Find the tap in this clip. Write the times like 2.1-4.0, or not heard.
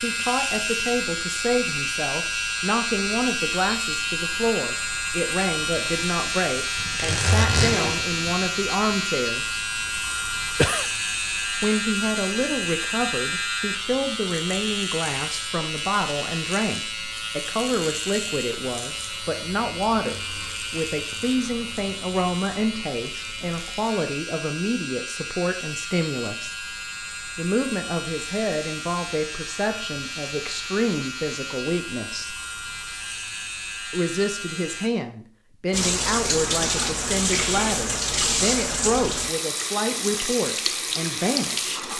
35.7-41.9.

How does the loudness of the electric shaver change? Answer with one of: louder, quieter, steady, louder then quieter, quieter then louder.
quieter.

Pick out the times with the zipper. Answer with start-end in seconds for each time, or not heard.
6.8-8.5.